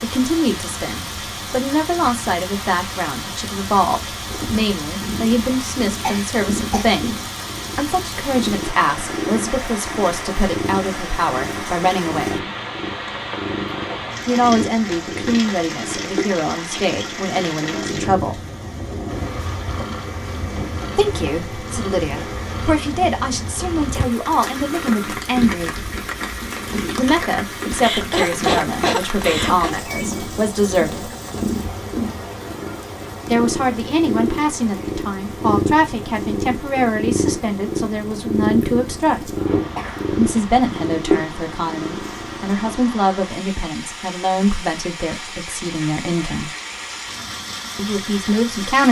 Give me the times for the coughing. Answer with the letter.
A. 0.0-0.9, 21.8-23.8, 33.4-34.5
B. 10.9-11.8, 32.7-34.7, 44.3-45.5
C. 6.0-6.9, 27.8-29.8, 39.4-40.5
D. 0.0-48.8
C.